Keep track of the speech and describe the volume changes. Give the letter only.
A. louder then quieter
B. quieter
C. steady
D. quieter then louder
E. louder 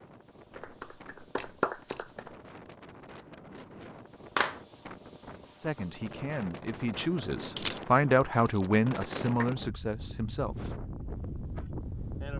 A.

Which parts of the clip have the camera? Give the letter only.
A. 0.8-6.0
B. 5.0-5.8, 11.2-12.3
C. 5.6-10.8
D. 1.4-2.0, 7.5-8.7
D.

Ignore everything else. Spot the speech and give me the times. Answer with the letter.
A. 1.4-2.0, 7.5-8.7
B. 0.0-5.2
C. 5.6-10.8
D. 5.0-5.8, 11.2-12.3
C.